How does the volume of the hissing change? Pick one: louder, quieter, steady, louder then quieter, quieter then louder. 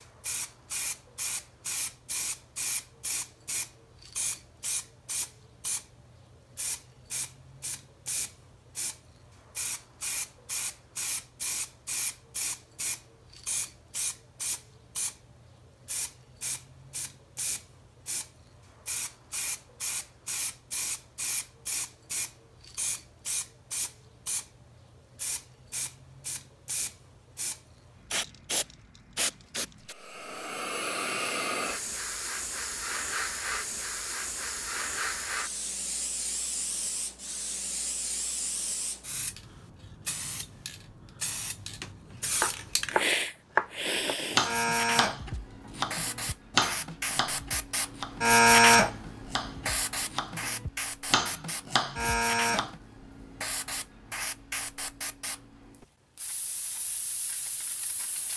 louder.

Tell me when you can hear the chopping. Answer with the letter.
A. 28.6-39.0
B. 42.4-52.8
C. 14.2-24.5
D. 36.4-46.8
B.